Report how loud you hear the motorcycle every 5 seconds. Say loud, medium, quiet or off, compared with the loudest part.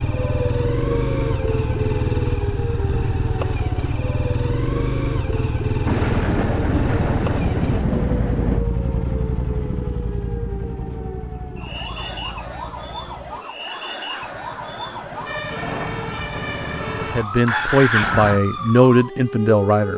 loud, loud, medium, loud.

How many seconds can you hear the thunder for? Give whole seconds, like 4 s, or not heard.
3 s.